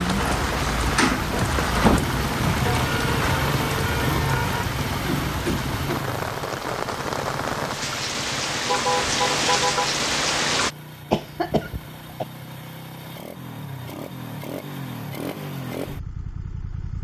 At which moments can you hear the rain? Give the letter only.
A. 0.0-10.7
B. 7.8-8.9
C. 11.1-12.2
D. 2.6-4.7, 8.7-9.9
A.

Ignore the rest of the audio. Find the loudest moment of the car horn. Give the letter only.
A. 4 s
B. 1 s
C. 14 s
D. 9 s
D.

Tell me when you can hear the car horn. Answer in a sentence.
The car horn can be heard from 2.6 to 4.7 s and from 8.7 to 9.9 s.